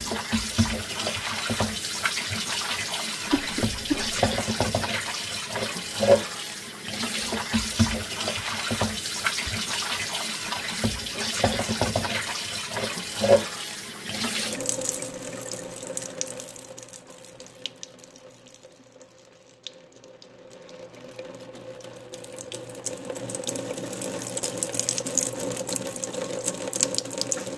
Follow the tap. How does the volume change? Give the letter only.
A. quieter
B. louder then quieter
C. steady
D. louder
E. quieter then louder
E.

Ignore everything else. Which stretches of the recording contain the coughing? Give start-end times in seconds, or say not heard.
3.3-4.2.